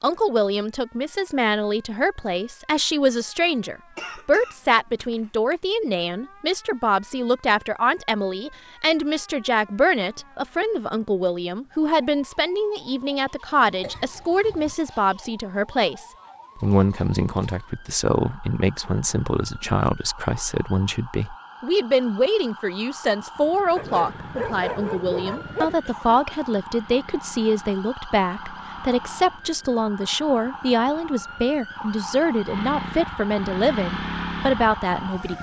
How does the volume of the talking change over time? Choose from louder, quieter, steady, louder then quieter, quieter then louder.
steady.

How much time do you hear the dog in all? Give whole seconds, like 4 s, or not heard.
2 s.